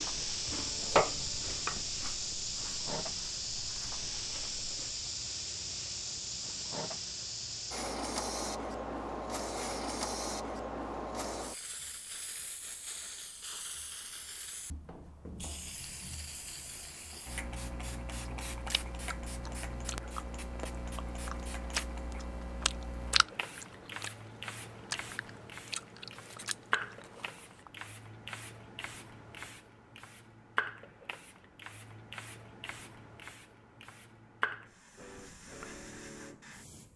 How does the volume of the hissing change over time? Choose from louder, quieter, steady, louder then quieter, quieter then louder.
quieter.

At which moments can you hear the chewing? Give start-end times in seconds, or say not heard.
0.0-5.0, 18.5-27.7.